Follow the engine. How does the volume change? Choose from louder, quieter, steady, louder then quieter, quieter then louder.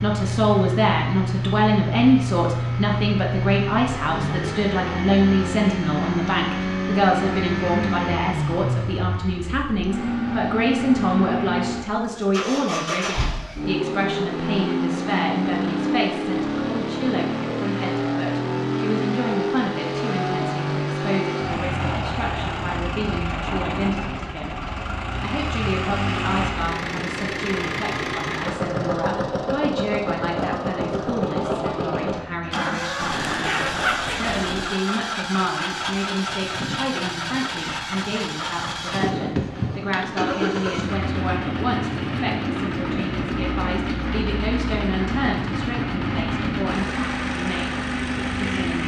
steady.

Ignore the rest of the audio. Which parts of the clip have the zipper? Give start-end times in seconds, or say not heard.
33.0-34.6.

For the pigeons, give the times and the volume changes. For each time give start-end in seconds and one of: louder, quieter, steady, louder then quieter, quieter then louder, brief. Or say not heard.
not heard.